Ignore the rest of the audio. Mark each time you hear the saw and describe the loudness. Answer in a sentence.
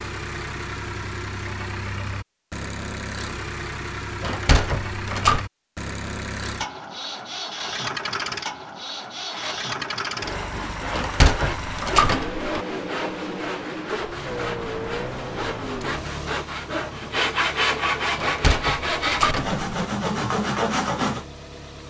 The saw can be heard from 9.3 to 21.2 s, getting louder.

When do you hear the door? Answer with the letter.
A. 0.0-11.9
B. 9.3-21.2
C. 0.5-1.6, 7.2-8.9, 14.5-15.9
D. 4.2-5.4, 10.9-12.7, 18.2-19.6
D.